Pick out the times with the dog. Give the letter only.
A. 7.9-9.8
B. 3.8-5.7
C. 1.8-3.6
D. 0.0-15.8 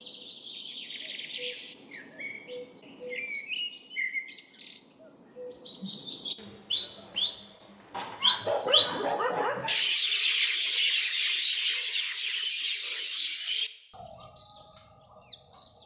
A.